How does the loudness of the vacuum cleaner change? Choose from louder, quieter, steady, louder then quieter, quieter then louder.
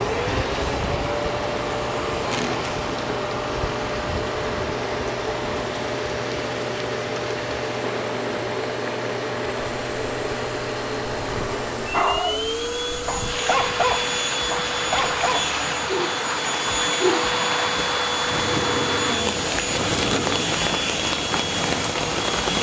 steady.